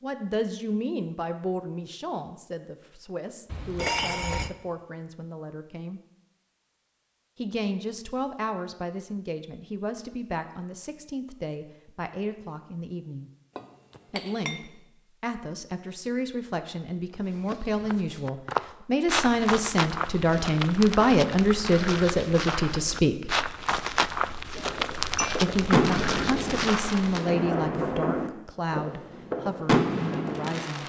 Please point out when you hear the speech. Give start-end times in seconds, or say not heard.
0.0-6.0, 7.3-13.3, 14.1-23.4, 25.4-30.8.